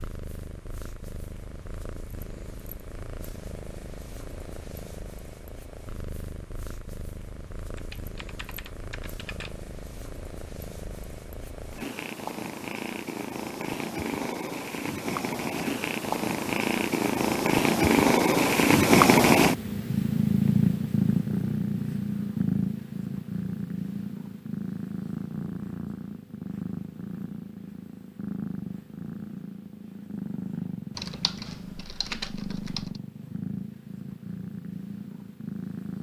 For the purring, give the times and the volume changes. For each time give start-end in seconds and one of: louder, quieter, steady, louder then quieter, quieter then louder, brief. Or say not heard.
0.0-35.9 louder then quieter.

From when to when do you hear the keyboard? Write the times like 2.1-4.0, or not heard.
7.8-9.6, 30.9-33.0.